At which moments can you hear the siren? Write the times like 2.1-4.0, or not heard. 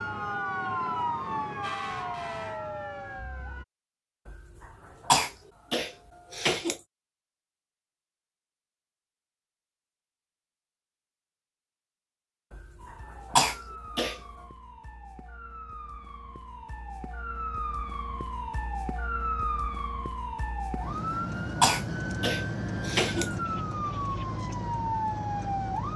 0.0-3.6, 12.8-25.9.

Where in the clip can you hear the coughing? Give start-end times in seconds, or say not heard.
4.2-6.8, 12.5-14.2, 20.8-23.3.